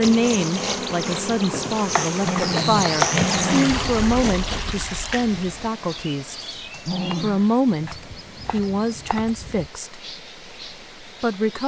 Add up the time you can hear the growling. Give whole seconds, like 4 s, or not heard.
2 s.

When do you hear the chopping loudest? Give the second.
3 s.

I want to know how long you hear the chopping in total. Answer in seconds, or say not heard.
3 s.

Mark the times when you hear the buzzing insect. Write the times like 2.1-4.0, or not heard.
0.0-4.8.